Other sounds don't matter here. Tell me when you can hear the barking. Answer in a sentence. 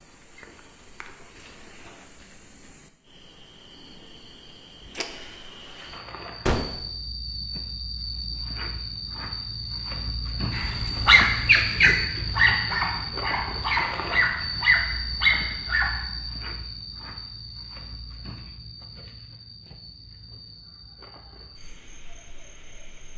You can hear the barking from 10.6 to 16.1 s.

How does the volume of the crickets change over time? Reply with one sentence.
The loudness of the crickets goes up, then down.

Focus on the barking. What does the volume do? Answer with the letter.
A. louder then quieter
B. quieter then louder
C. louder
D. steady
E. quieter
B.